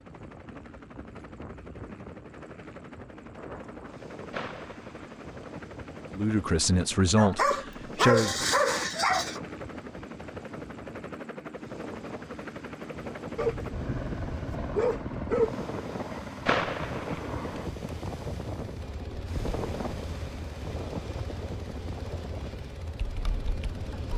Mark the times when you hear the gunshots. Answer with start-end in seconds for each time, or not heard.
4.3-5.4, 16.4-17.6.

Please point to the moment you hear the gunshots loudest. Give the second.
17 s.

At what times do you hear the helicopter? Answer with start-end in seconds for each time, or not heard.
0.0-24.1.